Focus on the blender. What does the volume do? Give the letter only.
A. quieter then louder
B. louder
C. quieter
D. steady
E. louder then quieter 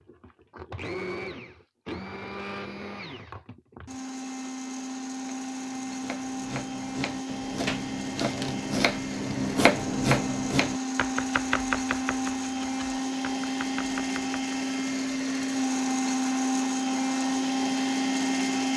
B.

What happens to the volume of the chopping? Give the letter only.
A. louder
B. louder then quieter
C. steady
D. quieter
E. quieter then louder
B.